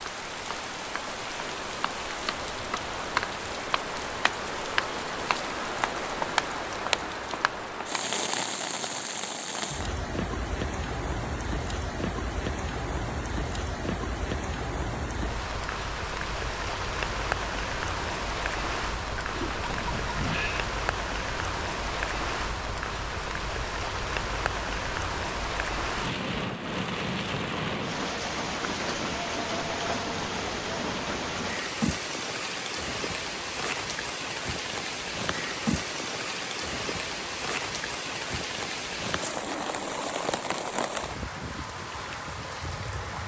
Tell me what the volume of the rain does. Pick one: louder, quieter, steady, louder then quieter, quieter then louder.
steady.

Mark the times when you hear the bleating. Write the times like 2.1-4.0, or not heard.
19.2-20.7.